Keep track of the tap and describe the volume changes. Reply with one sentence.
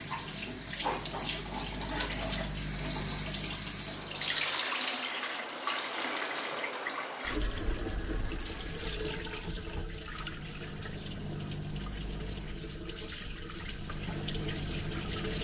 The loudness of the tap goes down.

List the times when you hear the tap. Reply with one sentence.
The tap can be heard from 0.0 to 15.3 s.